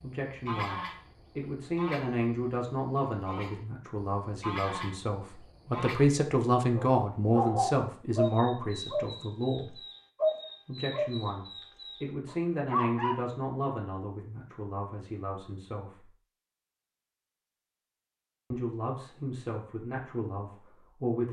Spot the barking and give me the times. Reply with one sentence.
You can hear the barking from 6.8 to 13.2 s.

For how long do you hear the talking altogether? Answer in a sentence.
The talking can be heard for 18 seconds in total.